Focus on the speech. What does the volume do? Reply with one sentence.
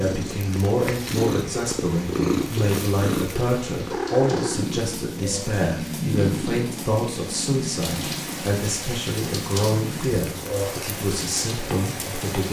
The loudness of the speech stays about the same.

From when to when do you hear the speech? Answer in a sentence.
The speech can be heard from 0.0 to 12.4 s.